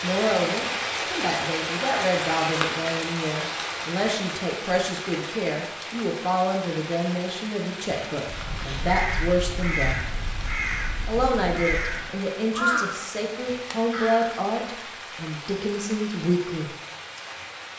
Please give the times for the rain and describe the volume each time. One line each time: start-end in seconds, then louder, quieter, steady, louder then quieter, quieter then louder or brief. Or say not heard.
0.0-17.7 quieter.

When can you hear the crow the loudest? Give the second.
13 s.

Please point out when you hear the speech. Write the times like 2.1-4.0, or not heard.
0.0-10.0, 11.1-16.7.